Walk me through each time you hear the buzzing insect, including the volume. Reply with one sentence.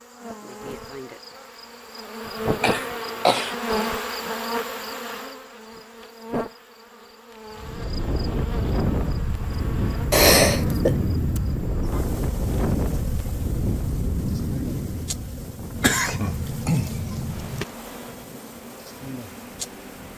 You can hear the buzzing insect from 0.0 to 20.1 s, getting quieter.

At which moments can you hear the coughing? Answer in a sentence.
You can hear the coughing from 2.6 to 3.5 s, from 10.1 to 10.9 s and from 15.8 to 17.6 s.